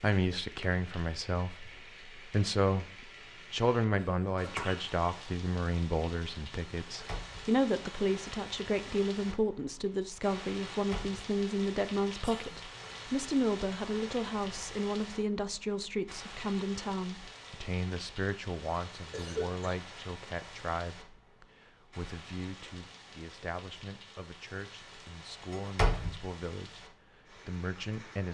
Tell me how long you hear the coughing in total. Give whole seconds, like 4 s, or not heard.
2 s.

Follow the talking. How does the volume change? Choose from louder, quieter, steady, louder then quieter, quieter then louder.
quieter.